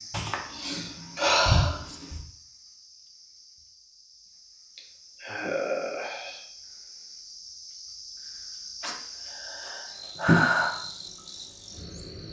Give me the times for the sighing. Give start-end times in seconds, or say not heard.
0.1-2.2, 4.8-6.5, 8.8-10.8.